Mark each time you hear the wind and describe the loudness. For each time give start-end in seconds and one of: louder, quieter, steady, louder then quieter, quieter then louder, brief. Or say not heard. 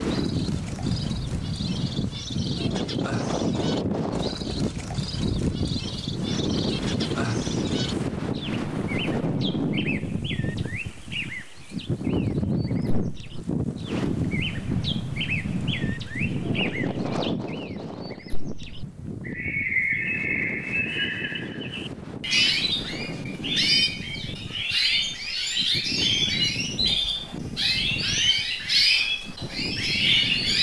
0.0-30.5 quieter.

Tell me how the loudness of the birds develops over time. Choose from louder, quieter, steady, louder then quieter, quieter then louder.
louder.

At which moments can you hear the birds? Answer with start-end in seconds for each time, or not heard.
0.0-30.5.